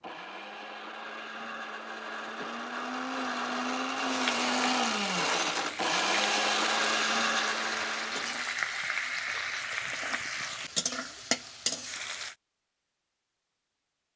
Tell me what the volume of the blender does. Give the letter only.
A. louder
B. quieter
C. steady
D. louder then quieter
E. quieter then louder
A.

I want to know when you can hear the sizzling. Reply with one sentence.
You can hear the sizzling from 4.0 to 12.3 s.